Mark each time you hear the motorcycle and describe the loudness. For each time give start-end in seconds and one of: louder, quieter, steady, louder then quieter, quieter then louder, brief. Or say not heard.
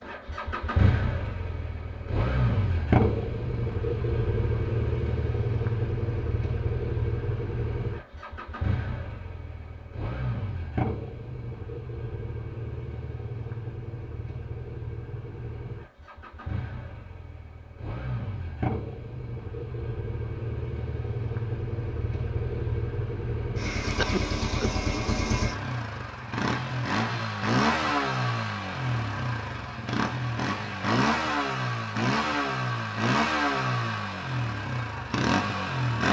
0.0-36.0 quieter then louder.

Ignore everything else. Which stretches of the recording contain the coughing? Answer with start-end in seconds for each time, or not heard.
23.9-24.7.